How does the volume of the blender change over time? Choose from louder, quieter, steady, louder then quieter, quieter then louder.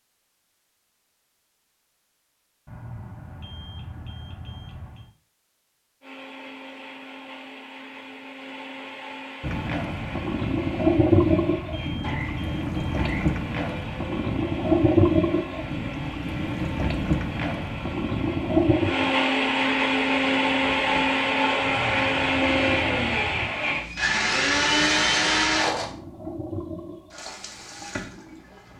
louder.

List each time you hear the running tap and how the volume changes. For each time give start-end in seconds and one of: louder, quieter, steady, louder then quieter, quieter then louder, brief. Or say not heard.
9.4-28.7 quieter.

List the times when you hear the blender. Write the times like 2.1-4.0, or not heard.
6.0-25.9.